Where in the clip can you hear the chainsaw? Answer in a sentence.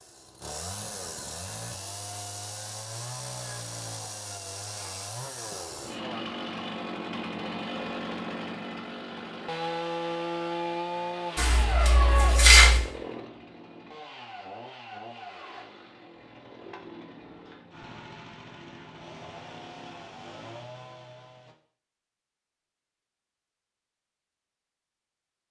You can hear the chainsaw from 0.0 to 21.6 s.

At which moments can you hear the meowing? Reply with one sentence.
The meowing can be heard from 11.3 to 12.8 s.